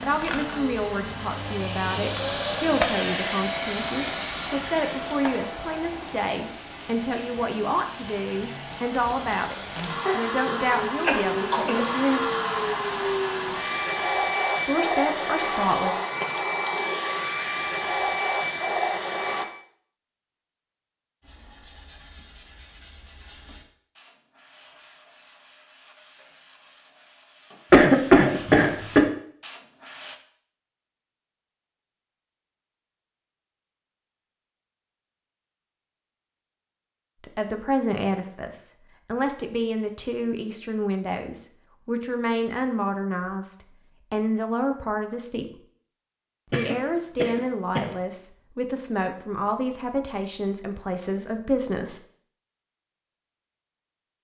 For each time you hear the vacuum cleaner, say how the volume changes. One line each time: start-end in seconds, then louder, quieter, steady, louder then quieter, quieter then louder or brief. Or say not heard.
0.0-19.4 quieter then louder.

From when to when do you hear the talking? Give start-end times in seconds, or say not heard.
0.0-12.2, 14.7-15.9, 37.2-45.5, 46.5-52.0.